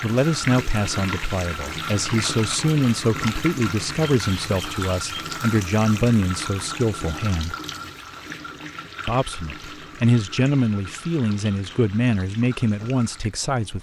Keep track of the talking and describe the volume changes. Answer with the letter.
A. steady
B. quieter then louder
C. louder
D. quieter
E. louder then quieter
A.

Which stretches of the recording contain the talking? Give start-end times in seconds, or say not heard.
0.0-7.5, 9.1-13.7.